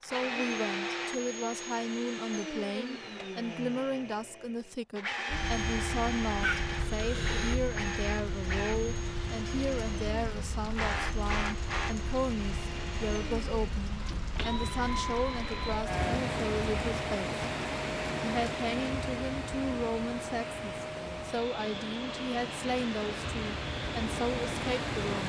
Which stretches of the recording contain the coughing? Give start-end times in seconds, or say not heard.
6.4-7.6.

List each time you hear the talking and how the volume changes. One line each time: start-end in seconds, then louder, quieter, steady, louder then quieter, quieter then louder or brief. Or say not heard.
0.0-17.4 steady
18.2-25.2 steady.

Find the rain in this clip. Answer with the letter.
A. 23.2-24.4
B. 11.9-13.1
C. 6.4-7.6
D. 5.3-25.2
D.